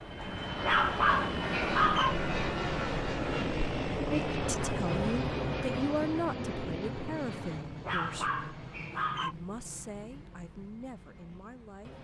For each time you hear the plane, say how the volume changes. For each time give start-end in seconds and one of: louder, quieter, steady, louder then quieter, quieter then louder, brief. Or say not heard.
0.0-11.9 quieter.